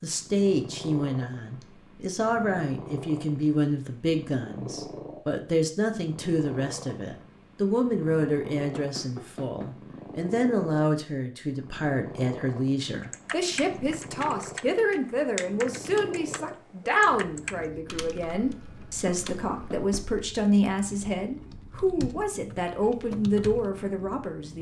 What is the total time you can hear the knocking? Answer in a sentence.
You can hear the knocking for 2 seconds altogether.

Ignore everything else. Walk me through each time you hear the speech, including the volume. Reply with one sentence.
You can hear the speech from 0.0 to 24.5 s, at a steady volume.